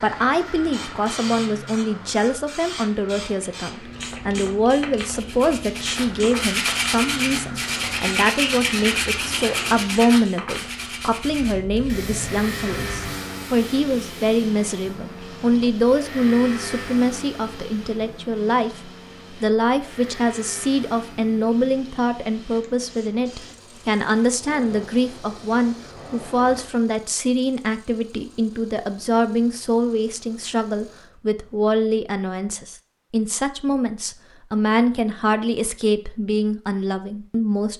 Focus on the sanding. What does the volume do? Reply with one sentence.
The volume of the sanding goes down.